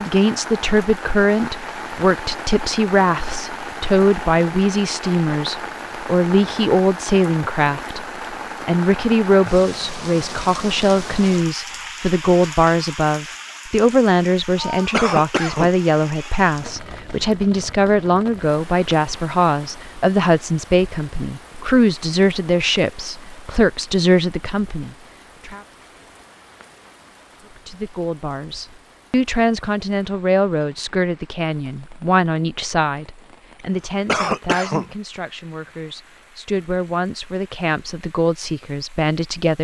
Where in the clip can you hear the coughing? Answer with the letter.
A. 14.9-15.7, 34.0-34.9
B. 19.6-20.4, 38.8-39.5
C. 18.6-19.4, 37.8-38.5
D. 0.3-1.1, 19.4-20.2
A.